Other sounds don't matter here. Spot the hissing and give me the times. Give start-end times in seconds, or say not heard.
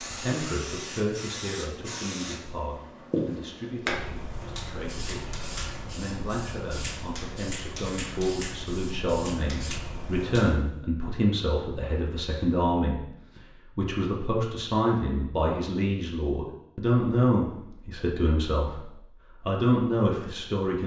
0.0-10.6.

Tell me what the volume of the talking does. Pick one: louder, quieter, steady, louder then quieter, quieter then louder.
louder.